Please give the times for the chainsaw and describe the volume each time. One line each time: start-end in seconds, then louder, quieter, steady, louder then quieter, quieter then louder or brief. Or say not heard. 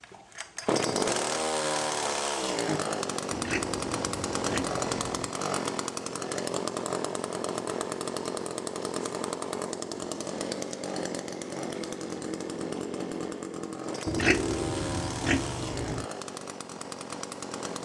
0.0-17.8 quieter.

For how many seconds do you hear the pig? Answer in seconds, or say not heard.
4 s.